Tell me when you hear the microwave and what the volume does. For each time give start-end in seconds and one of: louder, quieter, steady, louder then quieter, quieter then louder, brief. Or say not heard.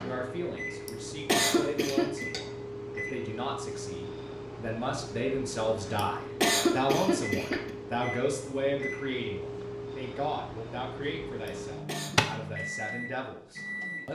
0.0-14.0 steady.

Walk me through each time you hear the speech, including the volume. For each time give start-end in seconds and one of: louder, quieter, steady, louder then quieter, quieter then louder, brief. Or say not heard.
0.0-14.0 louder then quieter.